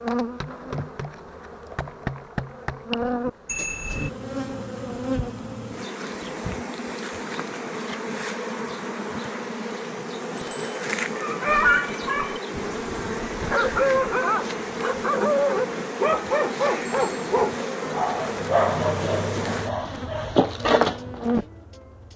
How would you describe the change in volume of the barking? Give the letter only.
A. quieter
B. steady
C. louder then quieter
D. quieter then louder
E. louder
B.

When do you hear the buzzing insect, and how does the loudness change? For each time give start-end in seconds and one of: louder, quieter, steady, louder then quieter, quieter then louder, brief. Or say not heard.
0.0-22.1 steady.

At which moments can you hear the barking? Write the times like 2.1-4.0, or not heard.
11.2-21.4.